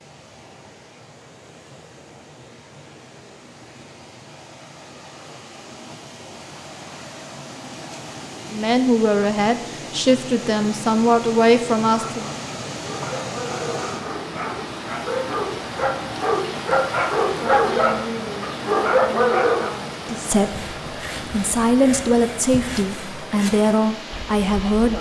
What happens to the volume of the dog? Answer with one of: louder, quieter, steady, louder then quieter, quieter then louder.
louder.